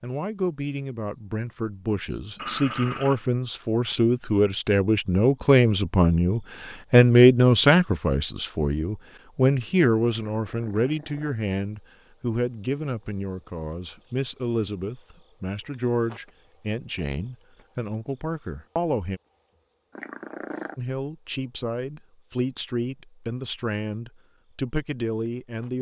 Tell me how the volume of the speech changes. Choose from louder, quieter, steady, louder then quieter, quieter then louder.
louder then quieter.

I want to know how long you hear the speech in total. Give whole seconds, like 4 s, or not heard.
24 s.